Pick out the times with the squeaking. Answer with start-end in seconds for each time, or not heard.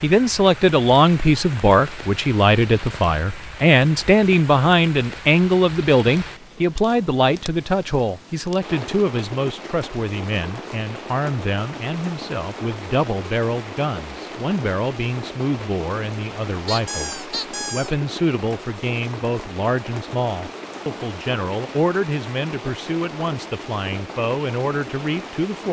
16.6-17.9.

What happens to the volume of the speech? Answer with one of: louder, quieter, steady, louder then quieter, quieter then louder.
quieter.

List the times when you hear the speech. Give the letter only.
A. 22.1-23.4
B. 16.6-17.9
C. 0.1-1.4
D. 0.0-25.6
D.